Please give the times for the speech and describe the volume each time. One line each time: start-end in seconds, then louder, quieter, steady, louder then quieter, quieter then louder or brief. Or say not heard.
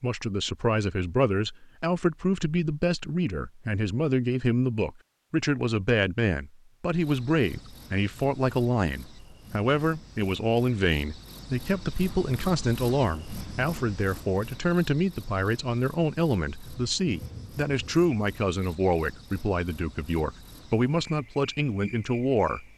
0.0-22.6 steady.